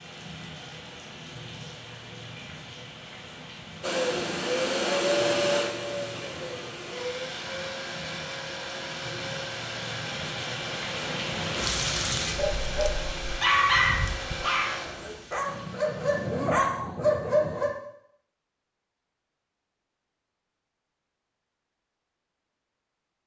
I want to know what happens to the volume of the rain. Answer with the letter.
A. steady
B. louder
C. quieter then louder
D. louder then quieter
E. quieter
D.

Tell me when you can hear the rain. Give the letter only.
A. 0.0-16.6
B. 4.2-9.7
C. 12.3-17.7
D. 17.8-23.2
A.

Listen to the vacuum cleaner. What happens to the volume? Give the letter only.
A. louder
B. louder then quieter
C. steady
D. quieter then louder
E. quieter
E.